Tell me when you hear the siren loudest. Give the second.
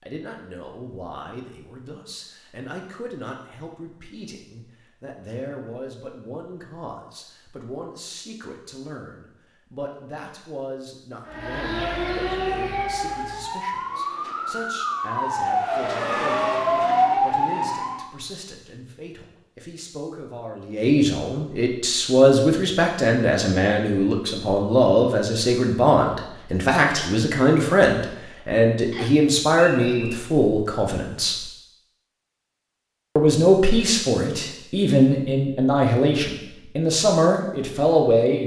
17 s.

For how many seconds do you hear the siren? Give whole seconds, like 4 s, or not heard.
7 s.